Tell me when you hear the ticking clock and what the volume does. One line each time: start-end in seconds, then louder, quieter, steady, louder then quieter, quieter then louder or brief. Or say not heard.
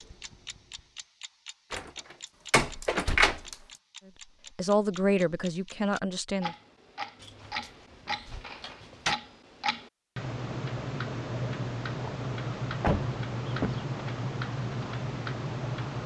0.0-16.0 louder.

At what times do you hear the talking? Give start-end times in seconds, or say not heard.
4.5-6.5.